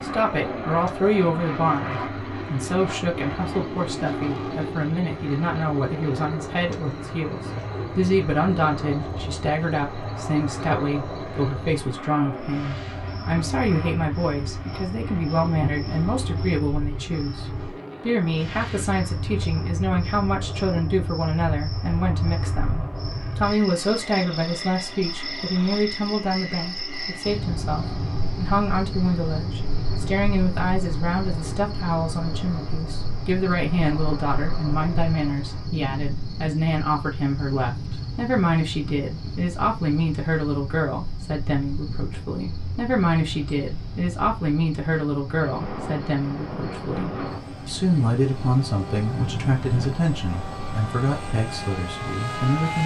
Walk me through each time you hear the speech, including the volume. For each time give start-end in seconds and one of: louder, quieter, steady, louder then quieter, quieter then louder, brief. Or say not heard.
0.0-52.8 steady.